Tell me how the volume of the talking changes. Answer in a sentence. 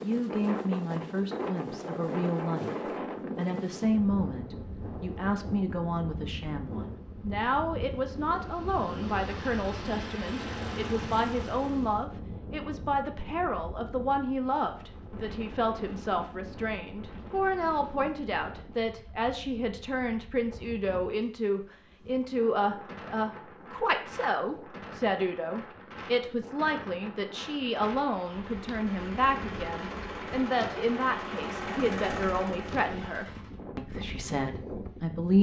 The loudness of the talking stays about the same.